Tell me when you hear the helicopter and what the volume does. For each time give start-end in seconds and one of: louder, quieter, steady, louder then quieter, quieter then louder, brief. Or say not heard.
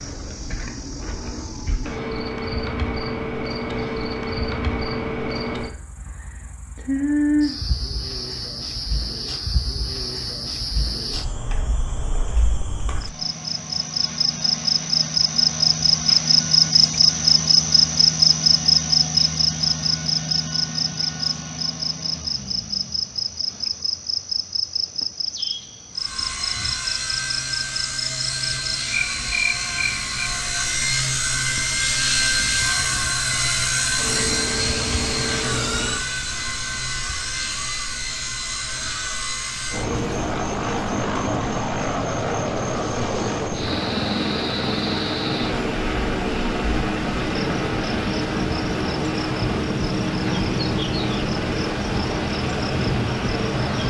25.9-53.8 steady.